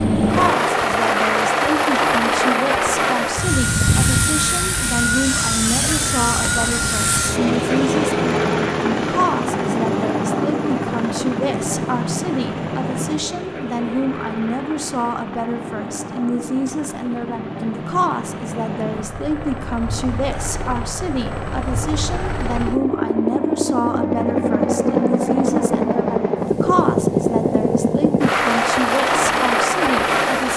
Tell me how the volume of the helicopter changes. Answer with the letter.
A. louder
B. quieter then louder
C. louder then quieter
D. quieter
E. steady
B.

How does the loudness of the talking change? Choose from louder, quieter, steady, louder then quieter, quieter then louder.
steady.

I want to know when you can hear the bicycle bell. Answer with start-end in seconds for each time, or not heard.
not heard.